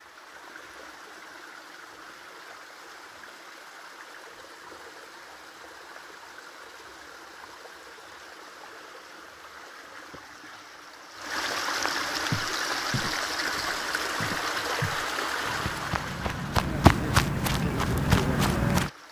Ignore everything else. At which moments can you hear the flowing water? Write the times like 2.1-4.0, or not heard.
0.0-19.0.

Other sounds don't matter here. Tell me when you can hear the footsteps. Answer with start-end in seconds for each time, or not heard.
12.3-18.9.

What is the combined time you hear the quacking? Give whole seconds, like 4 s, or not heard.
not heard.